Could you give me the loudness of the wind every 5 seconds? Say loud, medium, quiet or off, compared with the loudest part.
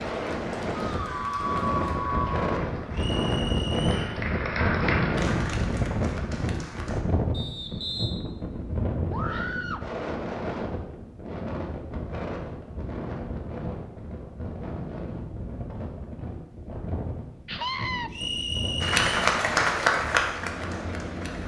loud, loud, medium, medium, medium.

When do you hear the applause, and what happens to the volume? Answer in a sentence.
The applause can be heard from 0.0 to 7.0 s, getting louder then quieter; and briefly from 18.8 to 21.4 s.